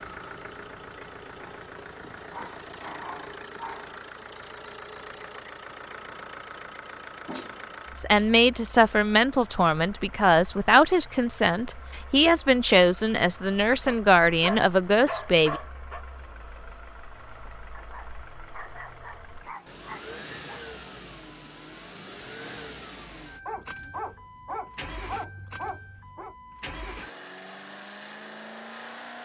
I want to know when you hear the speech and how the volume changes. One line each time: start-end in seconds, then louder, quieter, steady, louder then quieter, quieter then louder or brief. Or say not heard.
8.0-15.6 steady.